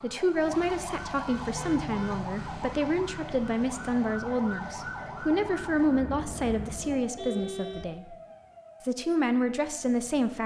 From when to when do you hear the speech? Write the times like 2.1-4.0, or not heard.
0.0-8.2, 8.8-10.4.